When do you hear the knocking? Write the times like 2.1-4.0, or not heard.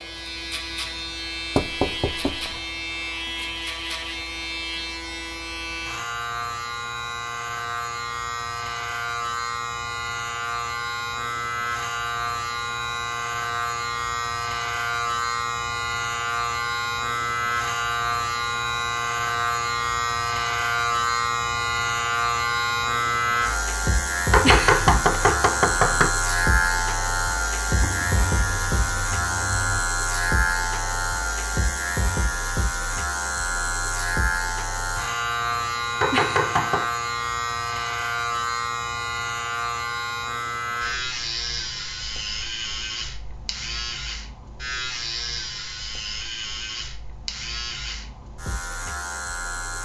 1.6-2.5, 24.3-26.1, 36.0-36.9.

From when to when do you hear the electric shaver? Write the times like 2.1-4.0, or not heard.
0.0-49.8.